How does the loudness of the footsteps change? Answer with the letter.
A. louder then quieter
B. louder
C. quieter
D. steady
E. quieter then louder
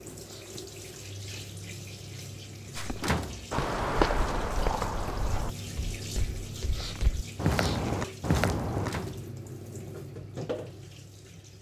E.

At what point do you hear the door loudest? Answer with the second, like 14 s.
3 s.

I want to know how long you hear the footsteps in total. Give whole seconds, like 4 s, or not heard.
6 s.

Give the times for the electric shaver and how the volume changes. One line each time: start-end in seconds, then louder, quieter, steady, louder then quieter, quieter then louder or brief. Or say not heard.
not heard.